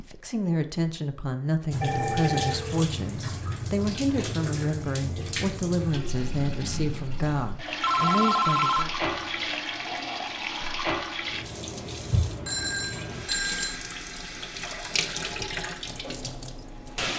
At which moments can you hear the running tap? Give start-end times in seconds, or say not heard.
1.7-17.1.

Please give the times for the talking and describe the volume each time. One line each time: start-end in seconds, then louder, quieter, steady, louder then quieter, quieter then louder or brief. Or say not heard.
0.0-8.9 steady.